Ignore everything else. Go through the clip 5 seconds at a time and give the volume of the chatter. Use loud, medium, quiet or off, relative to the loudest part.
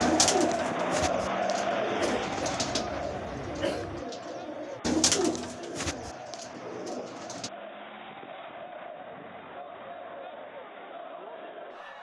loud, medium, medium.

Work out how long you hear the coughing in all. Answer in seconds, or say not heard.
2 s.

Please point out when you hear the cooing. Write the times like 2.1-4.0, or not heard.
0.0-7.5.